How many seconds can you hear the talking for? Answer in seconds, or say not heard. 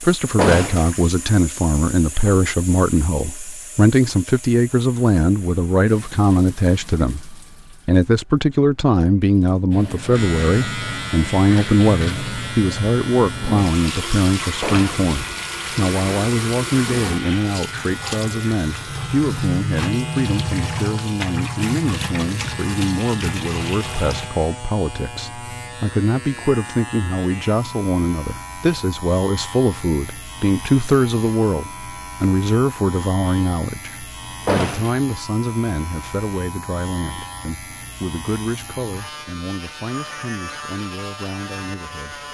42 s.